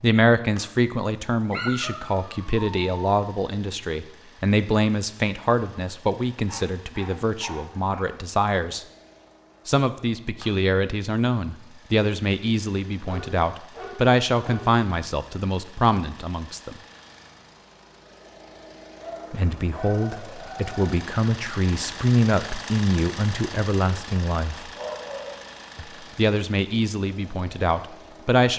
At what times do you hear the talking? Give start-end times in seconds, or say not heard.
0.0-8.8, 9.7-16.8, 19.3-24.7, 25.8-28.5.